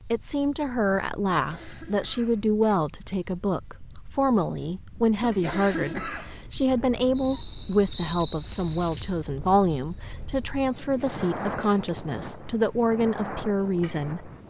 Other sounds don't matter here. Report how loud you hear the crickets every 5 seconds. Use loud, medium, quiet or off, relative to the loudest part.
medium, medium, loud.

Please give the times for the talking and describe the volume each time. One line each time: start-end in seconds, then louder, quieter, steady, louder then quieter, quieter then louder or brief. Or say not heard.
0.1-14.3 steady.